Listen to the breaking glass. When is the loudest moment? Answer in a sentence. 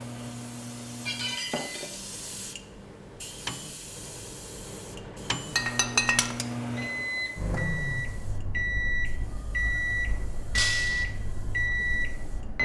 The loudest moment of the breaking glass is at 6 seconds.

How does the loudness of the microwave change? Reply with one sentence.
The loudness of the microwave goes up.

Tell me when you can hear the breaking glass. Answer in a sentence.
You can hear the breaking glass from 1.1 to 2.0 s, from 5.5 to 6.5 s and from 10.6 to 11.1 s.